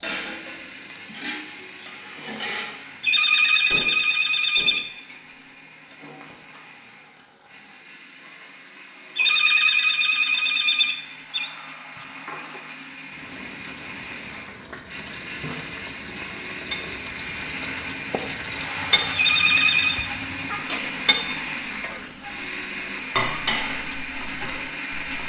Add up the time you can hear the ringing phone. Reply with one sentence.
The ringing phone can be heard for 5 seconds in total.